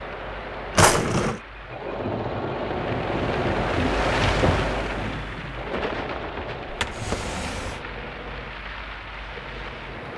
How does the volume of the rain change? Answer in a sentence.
The volume of the rain goes up, then down.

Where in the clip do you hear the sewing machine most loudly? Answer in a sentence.
The volume of the sewing machine peaks at 4 seconds.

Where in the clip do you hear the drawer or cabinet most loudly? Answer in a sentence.
The volume of the drawer or cabinet peaks at 1 second.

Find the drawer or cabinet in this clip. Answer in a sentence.
You can hear the drawer or cabinet from 0.8 to 1.4 s and from 6.7 to 7.8 s.